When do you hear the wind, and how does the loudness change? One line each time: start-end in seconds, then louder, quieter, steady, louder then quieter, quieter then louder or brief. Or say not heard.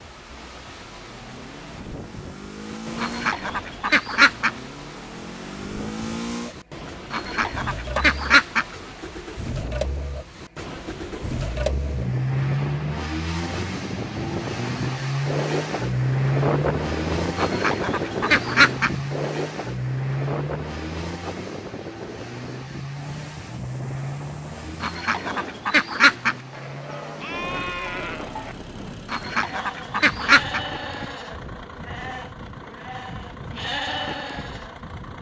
0.0-35.1 louder then quieter.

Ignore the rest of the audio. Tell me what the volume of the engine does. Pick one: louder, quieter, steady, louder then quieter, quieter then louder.
louder then quieter.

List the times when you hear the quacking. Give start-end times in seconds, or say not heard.
3.0-4.5, 7.1-8.7, 17.4-18.9, 24.8-26.4, 29.1-30.6.